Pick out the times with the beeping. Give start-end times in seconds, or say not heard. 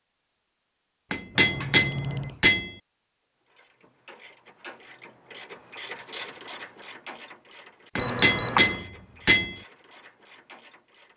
1.4-2.4, 8.0-8.8.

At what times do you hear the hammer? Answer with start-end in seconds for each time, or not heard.
1.1-2.8, 8.0-9.6.